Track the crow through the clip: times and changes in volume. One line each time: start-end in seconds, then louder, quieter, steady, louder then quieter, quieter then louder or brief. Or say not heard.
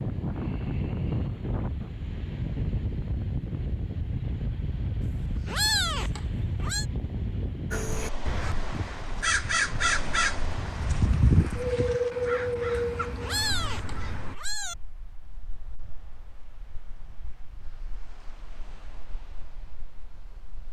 7.7-14.3 louder then quieter.